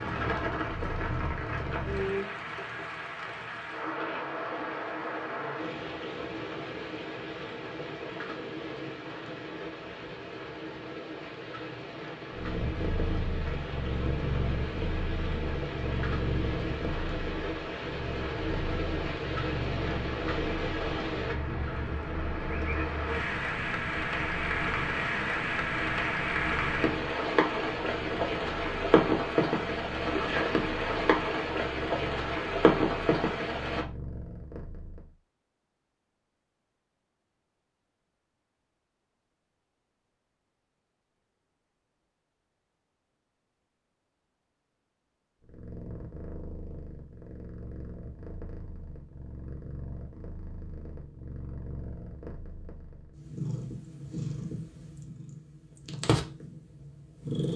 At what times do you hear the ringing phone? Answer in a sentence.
The ringing phone can't be heard in this clip.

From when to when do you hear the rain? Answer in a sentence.
You can hear the rain from 0.0 to 33.9 s.